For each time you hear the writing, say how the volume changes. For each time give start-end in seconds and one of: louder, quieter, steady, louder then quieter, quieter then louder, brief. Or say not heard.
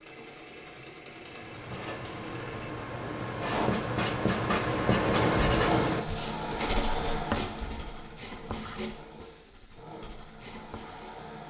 1.1-11.2 louder then quieter.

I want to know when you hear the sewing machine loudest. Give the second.
6 s.